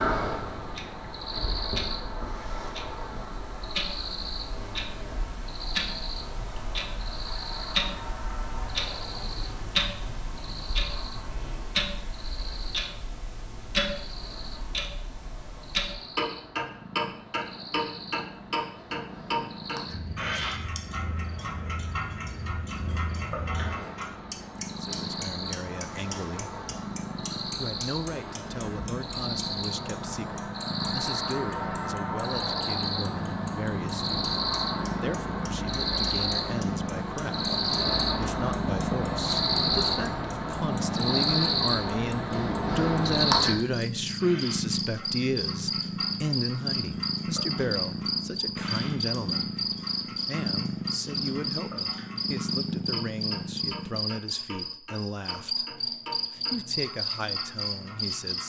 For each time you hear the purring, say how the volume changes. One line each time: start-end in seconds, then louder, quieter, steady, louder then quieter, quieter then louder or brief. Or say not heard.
16.6-54.2 louder.